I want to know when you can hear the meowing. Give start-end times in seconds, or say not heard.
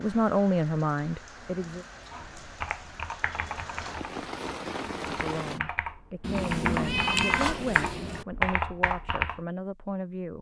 6.2-8.2.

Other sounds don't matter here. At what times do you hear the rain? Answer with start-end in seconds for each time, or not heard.
0.0-5.6.